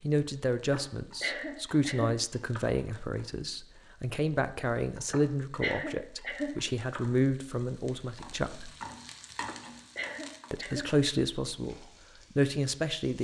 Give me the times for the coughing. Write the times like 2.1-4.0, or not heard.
0.7-2.6, 5.1-7.0, 9.4-10.9.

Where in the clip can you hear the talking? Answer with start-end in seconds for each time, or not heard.
0.0-8.7, 10.5-11.8, 12.3-13.2.